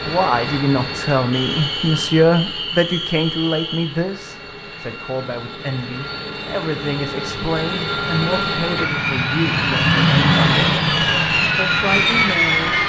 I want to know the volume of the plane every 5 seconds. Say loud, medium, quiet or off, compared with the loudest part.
quiet, medium, loud.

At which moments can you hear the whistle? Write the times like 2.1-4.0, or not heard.
1.3-4.0.